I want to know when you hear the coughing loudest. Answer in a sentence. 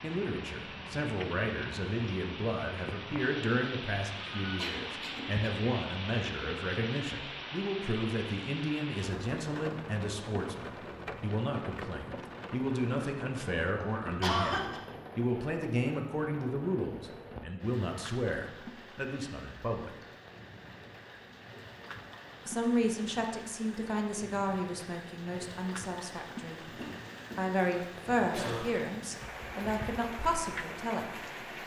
The loudest moment of the coughing is at 14 seconds.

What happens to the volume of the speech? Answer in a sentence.
The loudness of the speech stays about the same.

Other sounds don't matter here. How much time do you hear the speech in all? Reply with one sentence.
You can hear the speech for 28 seconds altogether.